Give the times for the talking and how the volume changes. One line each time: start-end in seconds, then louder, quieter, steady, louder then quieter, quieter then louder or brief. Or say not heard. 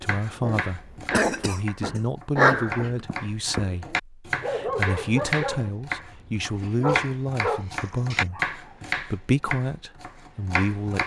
0.0-11.0 steady.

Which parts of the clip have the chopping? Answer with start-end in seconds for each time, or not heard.
0.0-11.0.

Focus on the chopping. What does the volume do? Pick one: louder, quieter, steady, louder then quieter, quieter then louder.
louder.